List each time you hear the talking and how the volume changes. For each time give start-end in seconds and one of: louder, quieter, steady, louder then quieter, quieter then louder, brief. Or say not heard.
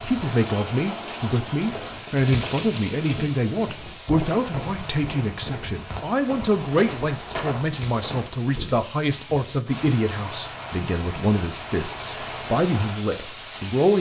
0.0-13.9 steady.